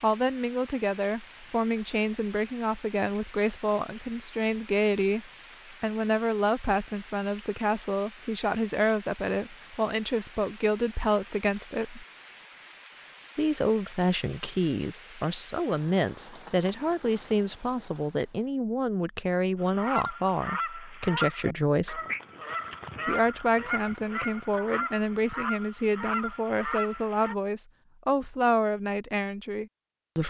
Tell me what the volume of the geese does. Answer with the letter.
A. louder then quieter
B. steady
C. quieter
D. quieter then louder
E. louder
B.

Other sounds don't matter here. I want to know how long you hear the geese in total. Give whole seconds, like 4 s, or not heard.
8 s.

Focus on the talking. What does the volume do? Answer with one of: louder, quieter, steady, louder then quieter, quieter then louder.
steady.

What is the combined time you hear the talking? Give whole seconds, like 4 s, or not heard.
28 s.